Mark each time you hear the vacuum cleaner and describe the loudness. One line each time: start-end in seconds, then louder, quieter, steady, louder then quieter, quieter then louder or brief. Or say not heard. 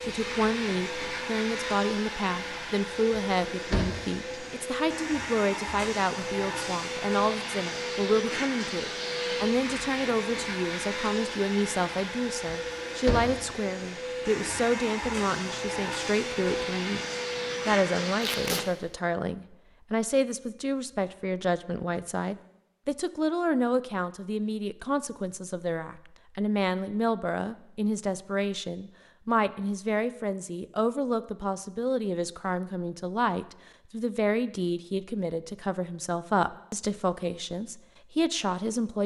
0.0-18.6 steady.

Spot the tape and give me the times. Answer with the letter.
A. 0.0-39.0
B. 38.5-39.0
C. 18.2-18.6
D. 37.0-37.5
C.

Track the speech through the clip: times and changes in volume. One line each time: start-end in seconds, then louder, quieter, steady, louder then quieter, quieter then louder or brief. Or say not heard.
0.0-39.0 steady.